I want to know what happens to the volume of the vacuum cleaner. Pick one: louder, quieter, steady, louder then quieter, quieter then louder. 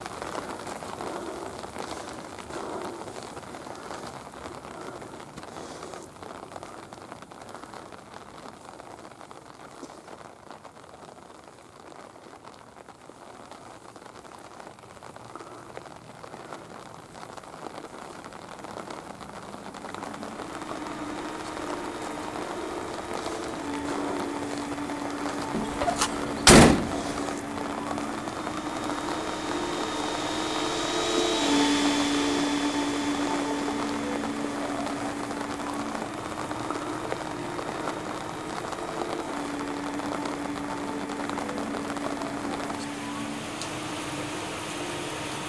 louder then quieter.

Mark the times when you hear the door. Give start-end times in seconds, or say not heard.
25.5-27.0.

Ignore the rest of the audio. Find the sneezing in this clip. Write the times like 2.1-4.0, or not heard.
not heard.